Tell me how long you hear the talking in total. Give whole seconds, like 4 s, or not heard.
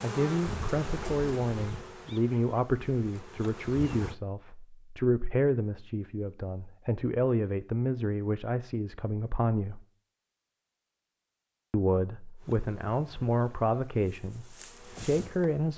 14 s.